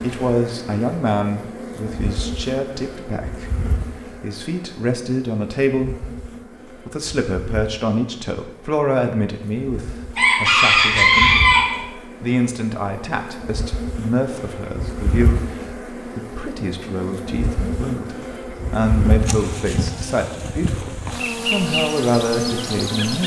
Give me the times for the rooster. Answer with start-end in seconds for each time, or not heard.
10.2-11.8.